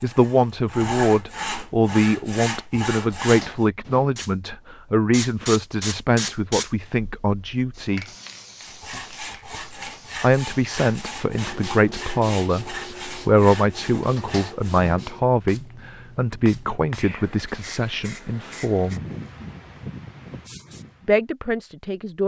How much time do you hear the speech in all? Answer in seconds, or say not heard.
18 s.